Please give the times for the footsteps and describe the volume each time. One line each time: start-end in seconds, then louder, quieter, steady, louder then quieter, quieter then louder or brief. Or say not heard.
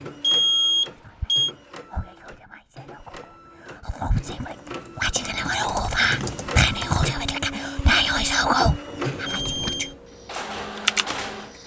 not heard.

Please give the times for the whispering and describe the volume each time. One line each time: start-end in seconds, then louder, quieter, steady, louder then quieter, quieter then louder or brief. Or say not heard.
0.9-9.8 louder.